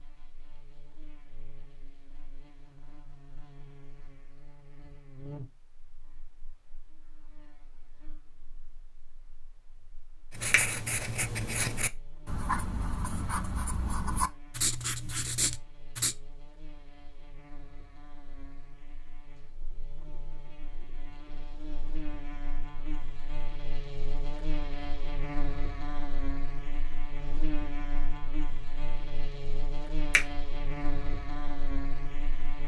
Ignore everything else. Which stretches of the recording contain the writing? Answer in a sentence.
You can hear the writing from 10.3 to 16.1 s.